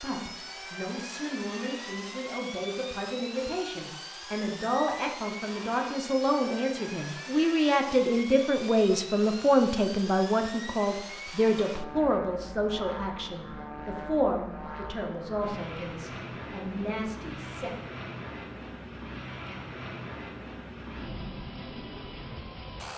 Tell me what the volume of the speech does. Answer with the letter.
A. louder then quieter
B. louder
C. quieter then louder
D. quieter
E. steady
A.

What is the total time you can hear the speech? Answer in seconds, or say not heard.
18 s.